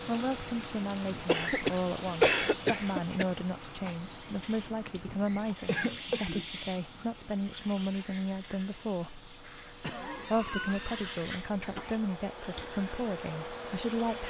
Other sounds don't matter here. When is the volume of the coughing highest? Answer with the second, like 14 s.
2 s.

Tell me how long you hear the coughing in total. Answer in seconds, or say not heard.
6 s.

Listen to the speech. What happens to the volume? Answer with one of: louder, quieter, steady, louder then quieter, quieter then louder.
steady.